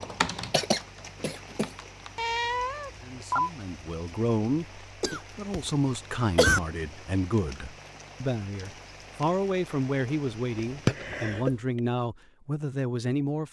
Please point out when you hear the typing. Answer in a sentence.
You can hear the typing from 0.0 to 2.3 s.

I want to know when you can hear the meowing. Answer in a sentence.
You can hear the meowing from 2.1 to 3.5 s.